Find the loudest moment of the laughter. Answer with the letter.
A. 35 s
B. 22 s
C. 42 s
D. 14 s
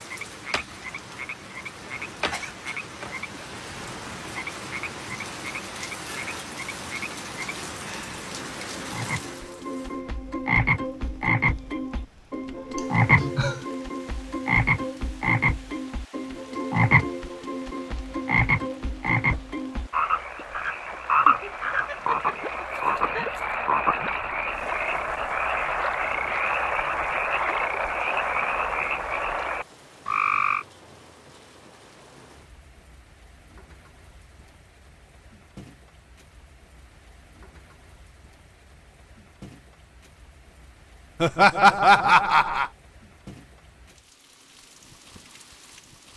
C.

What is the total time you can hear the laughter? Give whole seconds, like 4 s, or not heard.
5 s.